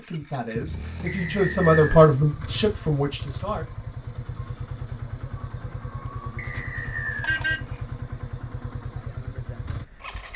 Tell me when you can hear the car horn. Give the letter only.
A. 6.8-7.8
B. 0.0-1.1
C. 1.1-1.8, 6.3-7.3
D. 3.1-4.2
A.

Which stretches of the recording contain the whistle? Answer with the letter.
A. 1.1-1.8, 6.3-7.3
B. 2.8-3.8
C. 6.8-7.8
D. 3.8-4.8
A.